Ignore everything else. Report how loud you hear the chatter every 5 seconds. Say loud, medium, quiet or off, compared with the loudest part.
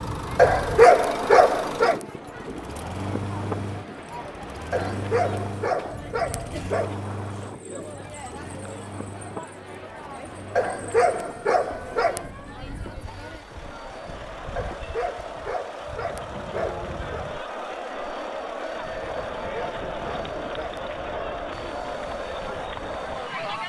medium, medium, medium, loud, loud.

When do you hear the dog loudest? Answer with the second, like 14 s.
1 s.